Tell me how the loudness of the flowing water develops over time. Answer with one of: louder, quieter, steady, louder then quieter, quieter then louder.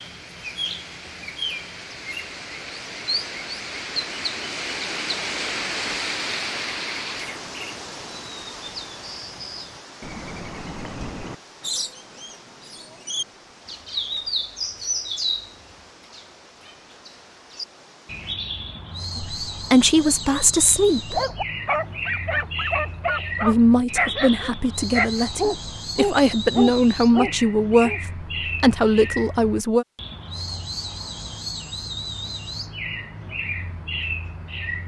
louder then quieter.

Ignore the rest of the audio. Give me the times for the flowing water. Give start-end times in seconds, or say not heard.
0.0-18.4.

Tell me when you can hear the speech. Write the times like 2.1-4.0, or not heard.
19.1-21.2, 23.4-29.9.